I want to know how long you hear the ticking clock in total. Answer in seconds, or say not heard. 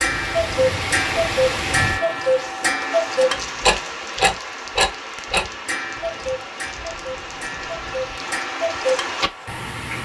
10 s.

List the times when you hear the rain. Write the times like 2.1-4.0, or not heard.
0.0-10.0.